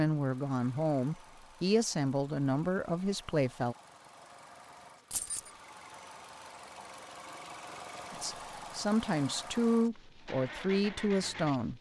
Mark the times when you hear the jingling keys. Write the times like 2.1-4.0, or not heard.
5.1-5.5.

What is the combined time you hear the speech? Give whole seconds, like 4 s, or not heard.
7 s.